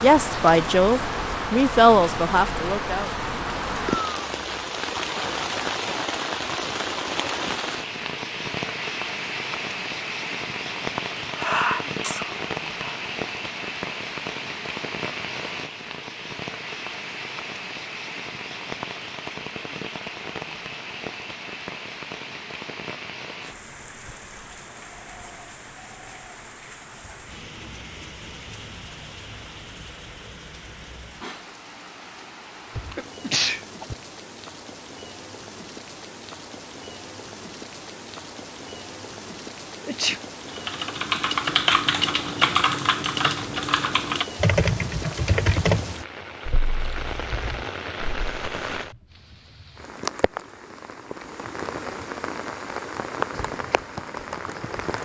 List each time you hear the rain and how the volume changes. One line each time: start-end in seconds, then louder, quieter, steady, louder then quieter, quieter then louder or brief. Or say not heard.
0.0-55.0 quieter then louder.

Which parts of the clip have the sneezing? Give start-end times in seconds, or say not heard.
11.2-12.9, 32.8-34.0, 39.8-40.2.